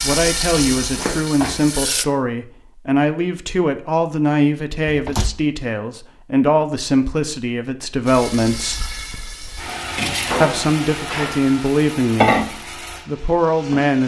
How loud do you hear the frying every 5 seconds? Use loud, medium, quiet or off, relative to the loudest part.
loud, medium, loud.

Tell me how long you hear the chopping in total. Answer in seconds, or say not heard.
not heard.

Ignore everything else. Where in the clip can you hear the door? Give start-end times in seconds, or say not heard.
0.6-1.8, 4.8-5.4, 10.1-11.6.